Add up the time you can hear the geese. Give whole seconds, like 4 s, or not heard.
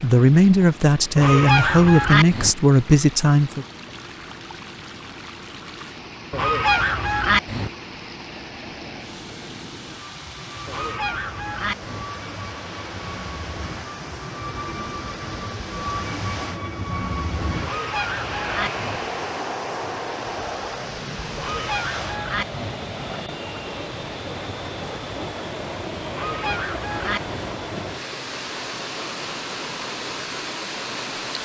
8 s.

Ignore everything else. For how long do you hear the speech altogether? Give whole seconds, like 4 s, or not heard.
4 s.